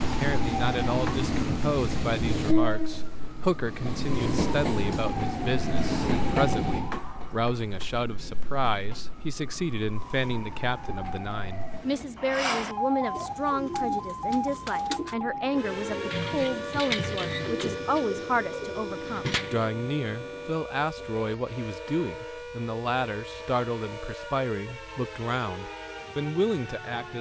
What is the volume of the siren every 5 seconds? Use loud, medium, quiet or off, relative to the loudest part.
medium, medium, loud, loud, medium, medium.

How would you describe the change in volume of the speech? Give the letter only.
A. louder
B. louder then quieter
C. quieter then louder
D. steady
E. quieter
D.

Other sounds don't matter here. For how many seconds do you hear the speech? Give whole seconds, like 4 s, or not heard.
27 s.